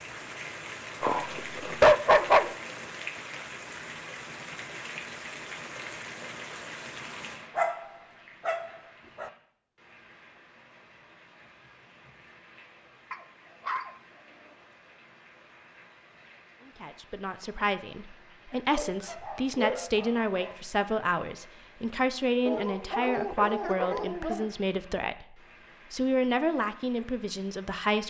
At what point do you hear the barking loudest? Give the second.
2 s.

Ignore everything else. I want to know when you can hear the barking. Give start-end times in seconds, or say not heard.
1.0-2.5, 7.5-9.3, 13.1-13.9, 18.8-20.6, 22.4-24.5.